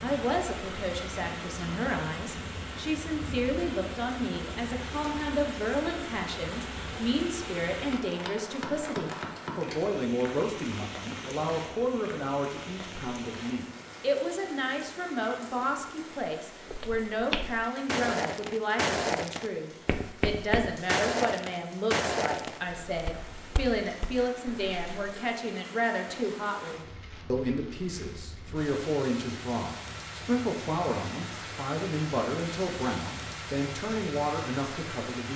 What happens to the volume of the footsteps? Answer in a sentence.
The volume of the footsteps goes down.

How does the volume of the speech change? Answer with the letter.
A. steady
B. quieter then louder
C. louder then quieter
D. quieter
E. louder
A.